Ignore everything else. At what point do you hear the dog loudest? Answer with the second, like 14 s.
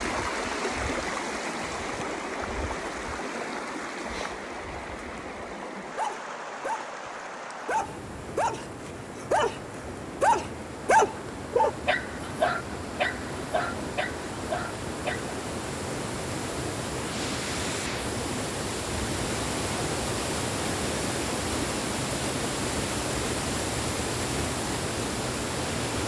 11 s.